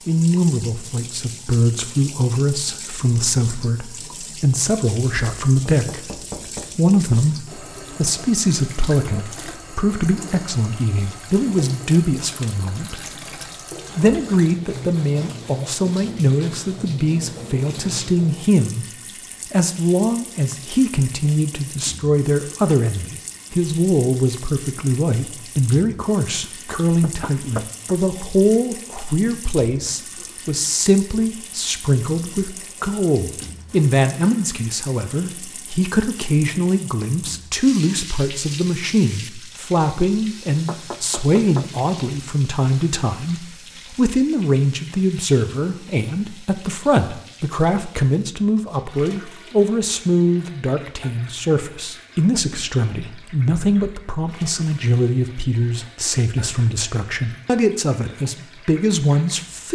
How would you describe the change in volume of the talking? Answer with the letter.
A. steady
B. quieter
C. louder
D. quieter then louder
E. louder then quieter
A.